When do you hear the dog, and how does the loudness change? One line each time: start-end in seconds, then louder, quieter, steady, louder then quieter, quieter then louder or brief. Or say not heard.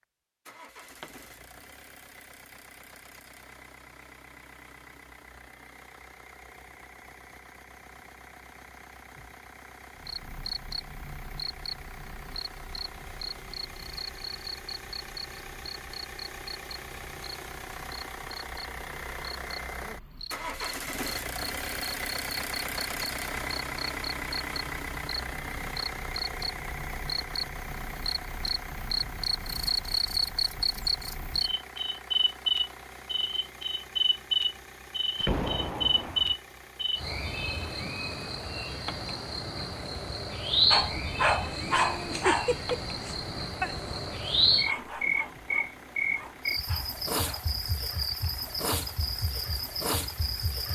40.7-47.5 quieter.